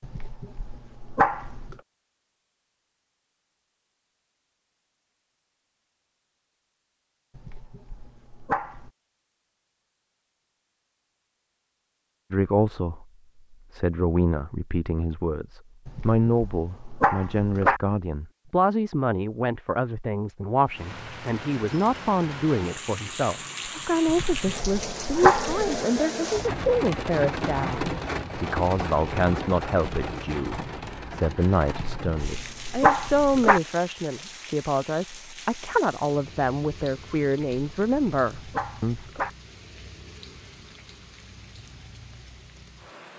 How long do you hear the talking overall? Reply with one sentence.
The talking can be heard for 27 seconds in total.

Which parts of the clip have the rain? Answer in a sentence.
The rain can be heard from 20.6 to 43.1 s.